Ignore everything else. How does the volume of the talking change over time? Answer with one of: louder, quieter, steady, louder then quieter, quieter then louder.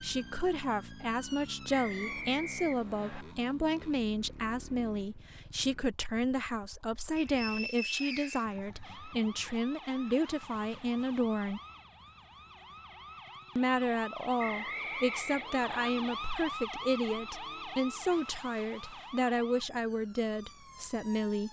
steady.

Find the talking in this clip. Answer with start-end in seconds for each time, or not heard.
0.0-11.6, 13.6-21.4.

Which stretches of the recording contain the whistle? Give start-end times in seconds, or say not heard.
1.7-3.2, 7.2-8.4, 14.3-15.9.